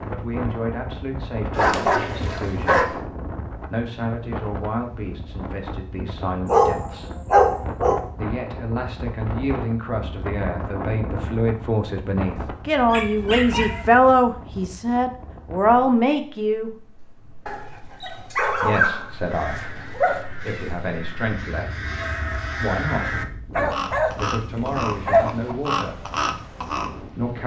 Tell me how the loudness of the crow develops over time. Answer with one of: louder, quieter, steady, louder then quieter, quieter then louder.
louder.